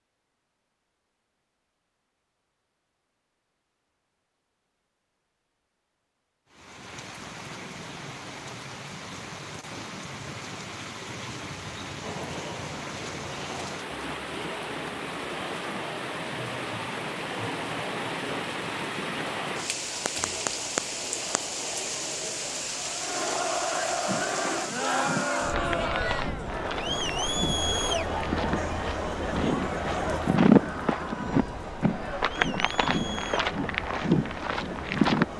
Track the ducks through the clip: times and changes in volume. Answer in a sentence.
You can't hear the ducks here.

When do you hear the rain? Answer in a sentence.
You can hear the rain from 6.5 to 35.3 s.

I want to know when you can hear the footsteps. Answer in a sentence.
You can hear the footsteps from 24.1 to 35.2 s.